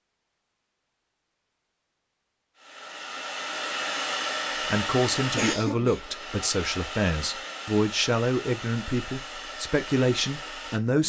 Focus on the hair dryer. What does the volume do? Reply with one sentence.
The volume of the hair dryer goes down.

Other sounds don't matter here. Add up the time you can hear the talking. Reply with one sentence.
The talking can be heard for 6 seconds in total.